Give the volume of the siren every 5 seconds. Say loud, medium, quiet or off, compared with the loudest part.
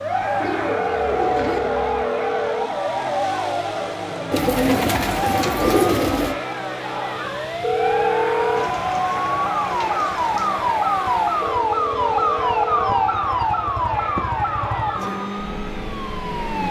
medium, medium, loud, medium.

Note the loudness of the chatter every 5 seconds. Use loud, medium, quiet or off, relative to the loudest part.
loud, loud, loud, medium.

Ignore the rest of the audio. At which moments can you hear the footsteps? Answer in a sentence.
The footsteps can't be heard in this clip.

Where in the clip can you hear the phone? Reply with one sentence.
The phone can be heard from 0.7 to 2.7 s, from 7.6 to 8.7 s and from 11.4 to 12.9 s.